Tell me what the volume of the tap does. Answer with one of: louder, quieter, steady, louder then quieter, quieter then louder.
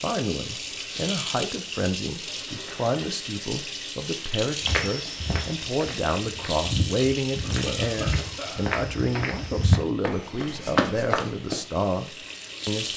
quieter.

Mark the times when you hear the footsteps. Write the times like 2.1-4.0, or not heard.
4.6-11.6.